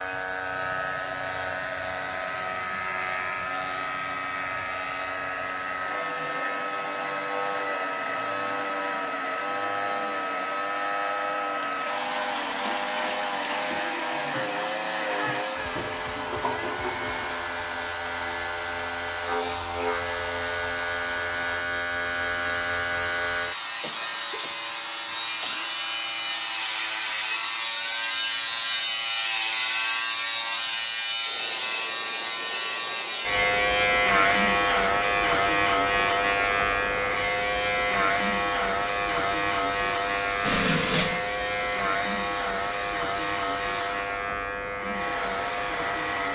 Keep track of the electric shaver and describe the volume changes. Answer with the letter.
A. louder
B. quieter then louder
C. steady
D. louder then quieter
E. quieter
D.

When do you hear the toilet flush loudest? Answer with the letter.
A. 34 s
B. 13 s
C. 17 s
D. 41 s
D.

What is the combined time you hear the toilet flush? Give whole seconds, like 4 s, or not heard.
5 s.